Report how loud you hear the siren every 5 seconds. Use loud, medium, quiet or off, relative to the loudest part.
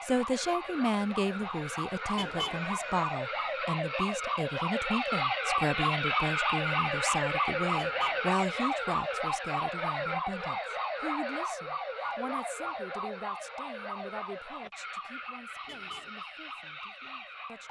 medium, loud, medium, quiet.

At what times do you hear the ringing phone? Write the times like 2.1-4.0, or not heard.
2.5-3.1, 12.0-12.8.